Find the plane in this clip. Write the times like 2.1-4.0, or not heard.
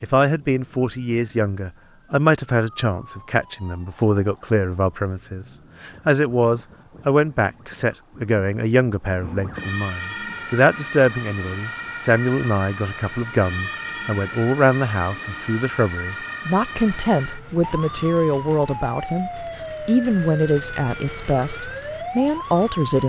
not heard.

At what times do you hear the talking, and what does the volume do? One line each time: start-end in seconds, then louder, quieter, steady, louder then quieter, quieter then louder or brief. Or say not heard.
0.0-23.0 steady.